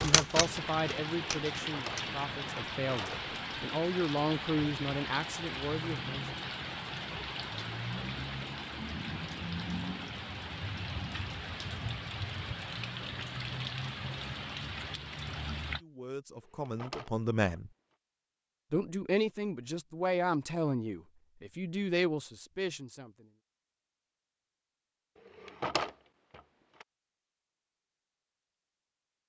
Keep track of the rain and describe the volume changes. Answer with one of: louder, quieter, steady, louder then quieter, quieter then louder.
steady.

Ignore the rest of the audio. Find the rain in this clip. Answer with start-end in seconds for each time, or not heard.
0.1-15.8.